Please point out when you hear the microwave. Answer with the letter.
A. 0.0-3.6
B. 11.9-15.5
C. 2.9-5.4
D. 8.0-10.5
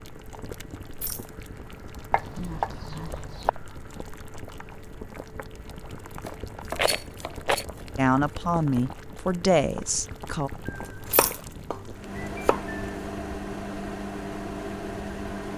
B.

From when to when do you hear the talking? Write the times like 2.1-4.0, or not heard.
8.0-10.5.